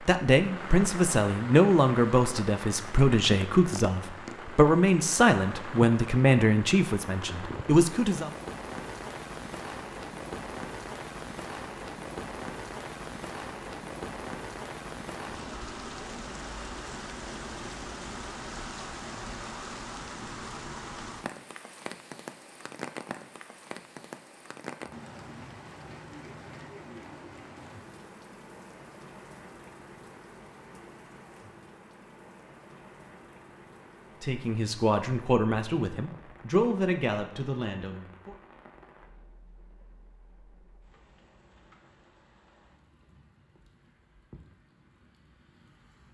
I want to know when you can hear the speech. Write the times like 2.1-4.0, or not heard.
0.1-8.3, 34.2-38.4.